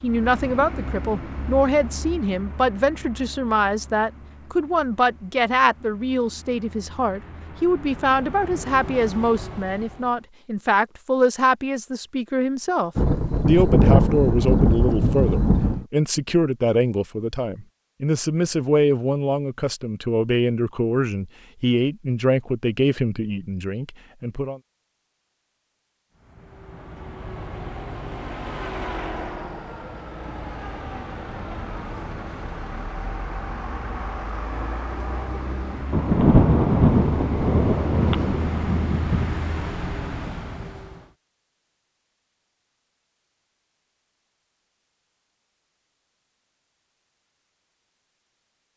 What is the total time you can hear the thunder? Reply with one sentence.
The thunder can be heard for 6 seconds in total.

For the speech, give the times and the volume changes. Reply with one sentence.
The speech can be heard from 0.0 to 24.6 s, at a steady volume.